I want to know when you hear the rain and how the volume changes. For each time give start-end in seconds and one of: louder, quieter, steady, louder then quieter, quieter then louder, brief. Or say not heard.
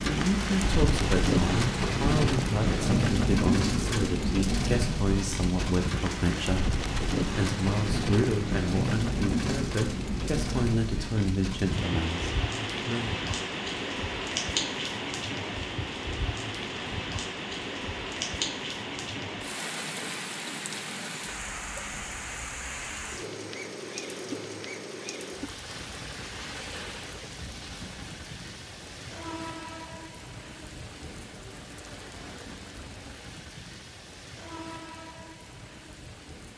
0.0-36.5 quieter.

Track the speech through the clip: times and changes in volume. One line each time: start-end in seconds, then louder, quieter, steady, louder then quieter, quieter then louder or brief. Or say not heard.
0.0-13.2 steady.